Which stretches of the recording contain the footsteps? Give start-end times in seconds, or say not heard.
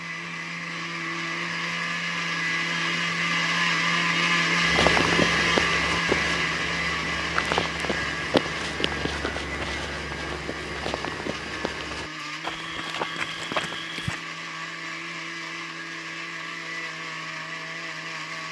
4.6-14.2.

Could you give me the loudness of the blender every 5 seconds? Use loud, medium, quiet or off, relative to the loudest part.
loud, loud, medium, medium.